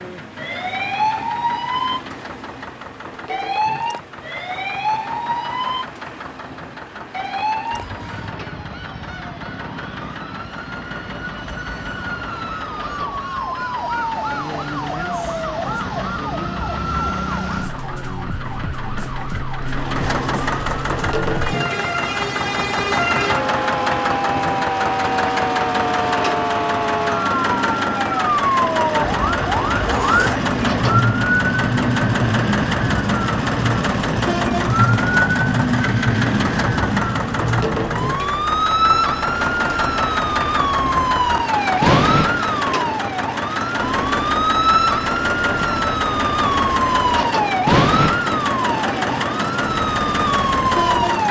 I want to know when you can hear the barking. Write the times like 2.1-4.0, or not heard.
not heard.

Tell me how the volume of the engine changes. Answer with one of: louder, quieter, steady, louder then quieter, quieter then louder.
louder.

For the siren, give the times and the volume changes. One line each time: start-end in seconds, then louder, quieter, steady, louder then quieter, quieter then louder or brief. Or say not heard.
0.0-51.2 louder.